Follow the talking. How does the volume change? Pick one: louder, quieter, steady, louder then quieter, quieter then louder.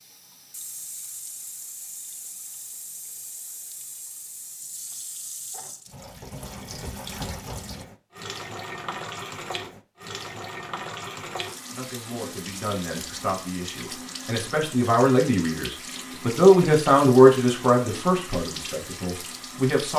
louder then quieter.